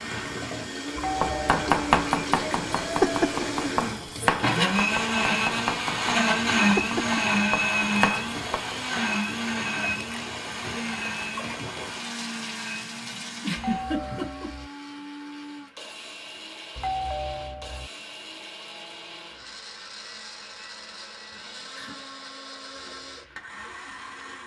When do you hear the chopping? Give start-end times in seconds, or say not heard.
1.0-8.8.